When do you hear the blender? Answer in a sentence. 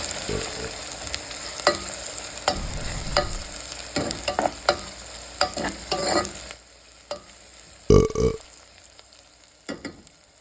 The blender can't be heard in this clip.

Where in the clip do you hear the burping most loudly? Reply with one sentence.
The volume of the burping peaks at 8 seconds.